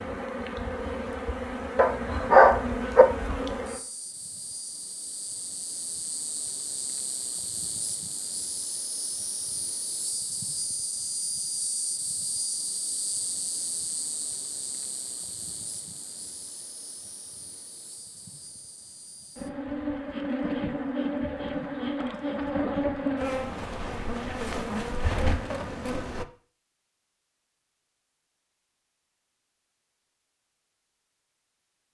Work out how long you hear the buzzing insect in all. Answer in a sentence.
The buzzing insect can be heard for 26 seconds in total.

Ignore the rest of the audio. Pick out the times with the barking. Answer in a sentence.
You can hear the barking from 1.8 to 3.0 s.